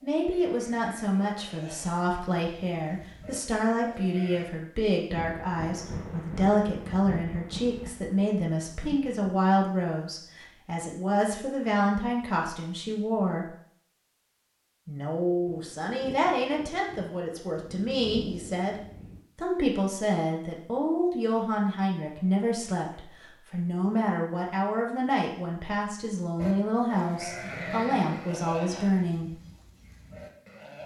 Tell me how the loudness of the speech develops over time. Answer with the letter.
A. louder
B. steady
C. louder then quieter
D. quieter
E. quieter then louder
B.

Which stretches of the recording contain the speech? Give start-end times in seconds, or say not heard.
0.0-13.5, 14.8-18.8, 19.4-29.4.